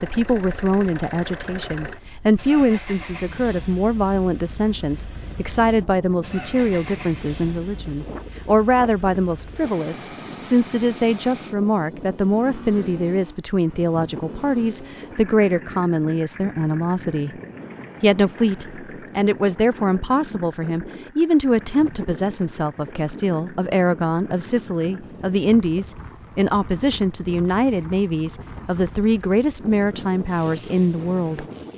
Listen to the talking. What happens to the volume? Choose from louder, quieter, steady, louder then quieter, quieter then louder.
steady.